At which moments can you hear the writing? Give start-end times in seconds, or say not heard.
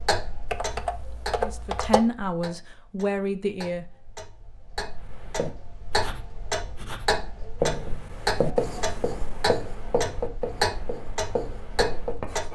4.9-12.5.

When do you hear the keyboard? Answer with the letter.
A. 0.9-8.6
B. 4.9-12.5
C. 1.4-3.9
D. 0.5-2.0
D.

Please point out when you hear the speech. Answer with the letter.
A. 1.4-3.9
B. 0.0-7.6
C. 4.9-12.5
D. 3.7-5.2
A.